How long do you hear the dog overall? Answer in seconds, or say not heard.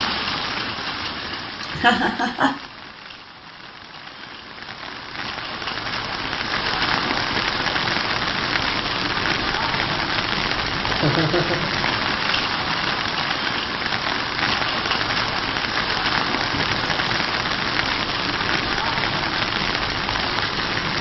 not heard.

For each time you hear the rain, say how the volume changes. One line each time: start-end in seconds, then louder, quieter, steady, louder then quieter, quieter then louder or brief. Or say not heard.
0.0-20.9 louder.